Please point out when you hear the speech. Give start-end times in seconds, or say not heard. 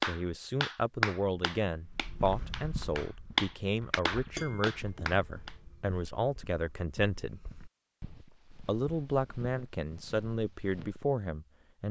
0.0-7.4, 8.7-11.8.